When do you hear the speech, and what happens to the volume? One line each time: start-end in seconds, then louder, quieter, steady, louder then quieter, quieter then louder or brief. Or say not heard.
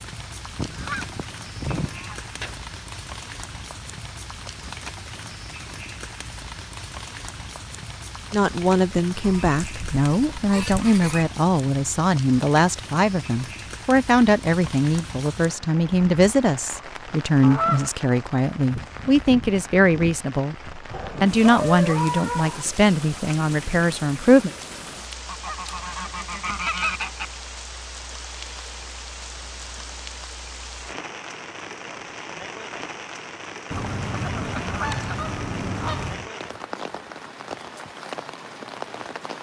8.3-24.5 steady.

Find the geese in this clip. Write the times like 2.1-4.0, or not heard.
0.6-2.6, 9.2-11.2, 17.4-17.9, 25.2-27.2, 33.7-36.3.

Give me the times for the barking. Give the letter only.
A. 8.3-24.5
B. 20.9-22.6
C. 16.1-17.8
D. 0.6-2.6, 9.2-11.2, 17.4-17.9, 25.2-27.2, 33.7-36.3
B.